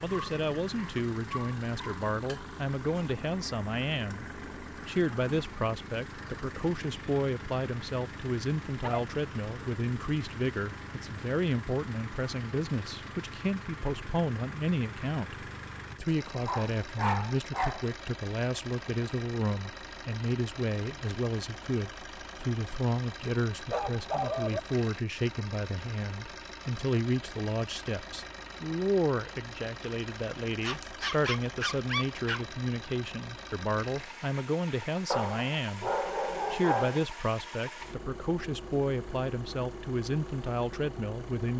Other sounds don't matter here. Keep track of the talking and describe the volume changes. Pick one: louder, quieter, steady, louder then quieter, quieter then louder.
steady.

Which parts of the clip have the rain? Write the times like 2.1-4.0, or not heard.
not heard.